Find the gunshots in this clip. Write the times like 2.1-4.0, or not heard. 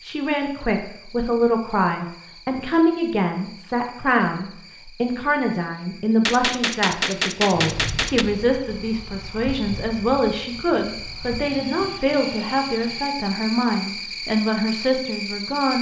6.2-8.2.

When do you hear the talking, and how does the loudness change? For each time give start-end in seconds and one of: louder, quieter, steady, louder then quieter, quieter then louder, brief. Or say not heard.
0.0-15.7 steady.